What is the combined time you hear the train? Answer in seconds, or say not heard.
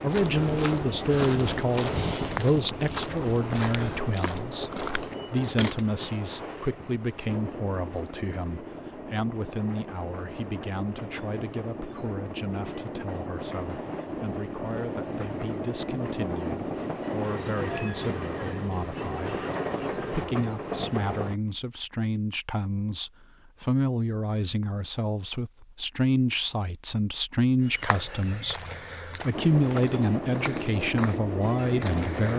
24 s.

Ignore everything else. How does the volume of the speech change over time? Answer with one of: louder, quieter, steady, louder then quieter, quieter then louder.
quieter then louder.